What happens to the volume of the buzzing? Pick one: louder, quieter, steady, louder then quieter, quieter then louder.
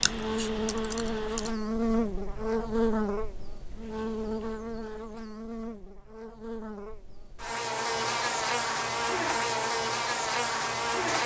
quieter then louder.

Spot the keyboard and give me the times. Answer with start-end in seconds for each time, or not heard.
0.0-1.5.